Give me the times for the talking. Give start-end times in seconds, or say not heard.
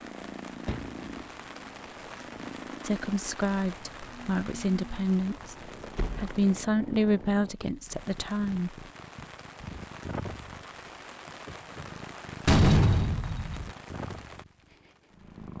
2.8-8.8.